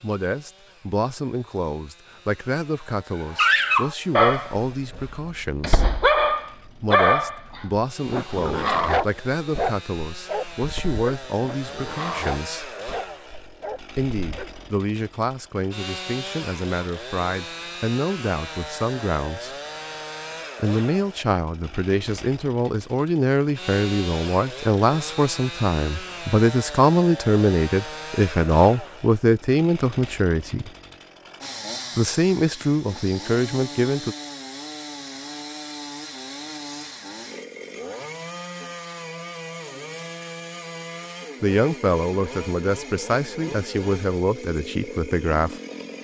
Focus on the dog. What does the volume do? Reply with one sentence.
The loudness of the dog goes down.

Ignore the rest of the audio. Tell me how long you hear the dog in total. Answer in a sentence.
The dog can be heard for 11 seconds in total.